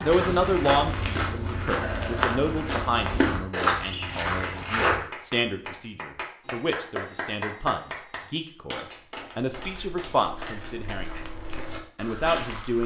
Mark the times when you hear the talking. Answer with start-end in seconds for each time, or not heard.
0.0-11.1, 11.9-12.8.